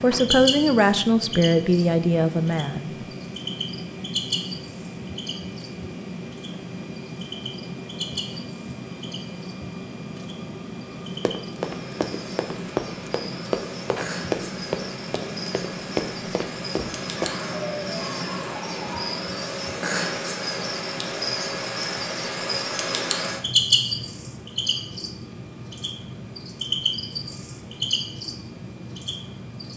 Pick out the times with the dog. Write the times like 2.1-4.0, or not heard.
17.1-19.1.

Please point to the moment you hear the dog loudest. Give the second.
18 s.